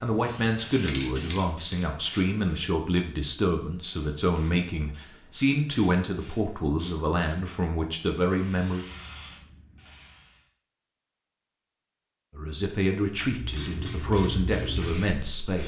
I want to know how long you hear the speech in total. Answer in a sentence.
The speech can be heard for 12 seconds in total.